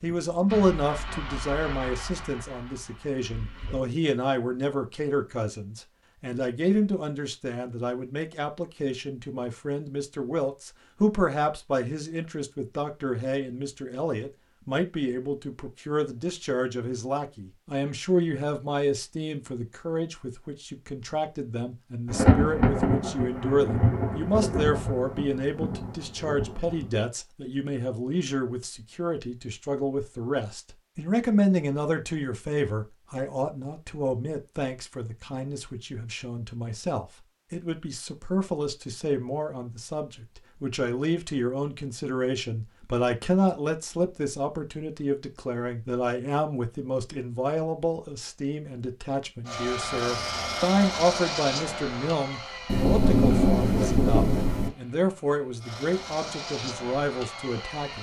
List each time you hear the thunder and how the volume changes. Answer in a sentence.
You can hear the thunder from 22.1 to 26.9 s, getting quieter; and briefly from 52.6 to 54.7 s.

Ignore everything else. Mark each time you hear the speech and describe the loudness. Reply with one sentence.
You can hear the speech from 0.0 to 57.9 s, at a steady volume.